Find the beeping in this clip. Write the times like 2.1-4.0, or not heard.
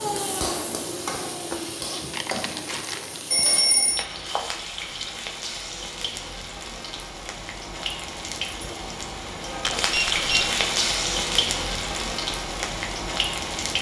3.3-4.0, 9.9-10.6.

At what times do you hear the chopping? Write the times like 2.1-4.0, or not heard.
not heard.